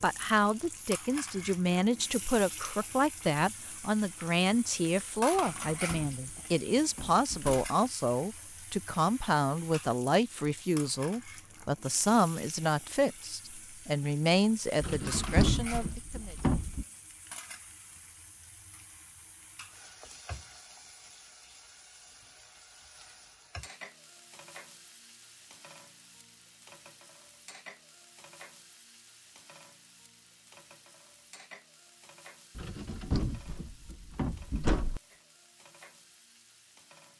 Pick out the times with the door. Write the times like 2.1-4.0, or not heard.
5.3-7.5, 14.8-16.9, 32.5-35.0.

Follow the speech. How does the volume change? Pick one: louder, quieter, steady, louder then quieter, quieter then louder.
steady.